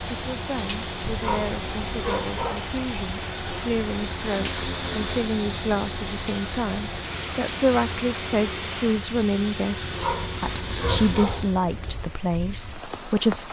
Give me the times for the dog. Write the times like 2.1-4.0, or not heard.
1.1-2.8, 9.8-11.4.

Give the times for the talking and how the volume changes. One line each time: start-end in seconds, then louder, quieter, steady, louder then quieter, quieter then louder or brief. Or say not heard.
0.1-13.4 louder.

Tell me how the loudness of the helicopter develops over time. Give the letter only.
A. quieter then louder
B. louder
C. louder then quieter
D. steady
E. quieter
D.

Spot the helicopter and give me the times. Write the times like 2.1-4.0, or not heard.
0.0-11.7.